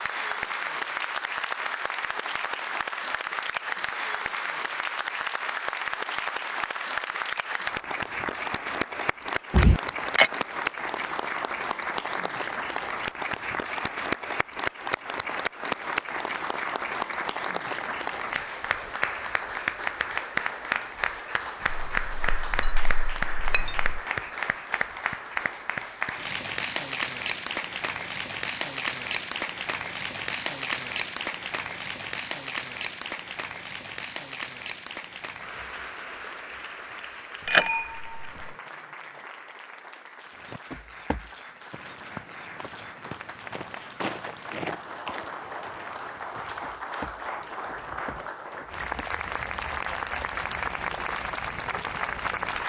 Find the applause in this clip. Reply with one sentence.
The applause can be heard from 0.0 to 52.6 s.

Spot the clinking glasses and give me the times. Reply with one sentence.
You can hear the clinking glasses from 9.5 to 10.3 s, from 21.6 to 24.0 s and from 37.5 to 38.5 s.